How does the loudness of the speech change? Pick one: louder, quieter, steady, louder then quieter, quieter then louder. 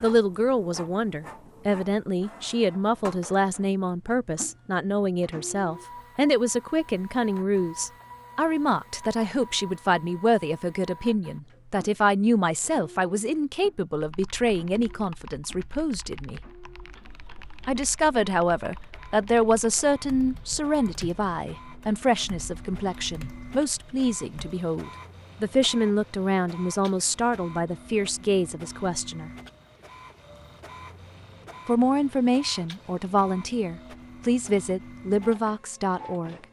steady.